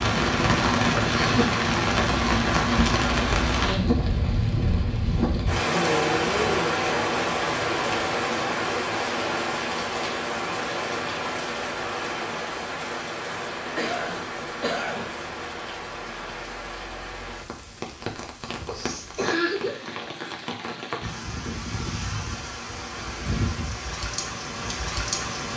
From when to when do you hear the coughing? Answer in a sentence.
You can hear the coughing from 1.0 to 1.5 s, from 13.8 to 15.2 s and from 18.4 to 20.0 s.